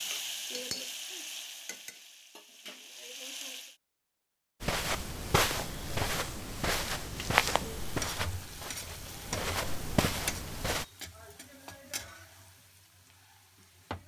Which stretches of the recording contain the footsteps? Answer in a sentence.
The footsteps can be heard from 4.6 to 10.8 s.